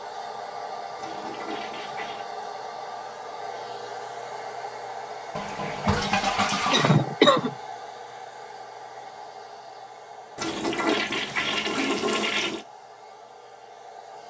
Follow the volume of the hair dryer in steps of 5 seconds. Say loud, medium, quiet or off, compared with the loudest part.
loud, loud, medium.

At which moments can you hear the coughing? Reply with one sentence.
You can hear the coughing from 6.7 to 7.5 s.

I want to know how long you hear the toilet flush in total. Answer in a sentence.
The toilet flush can be heard for 5 seconds in total.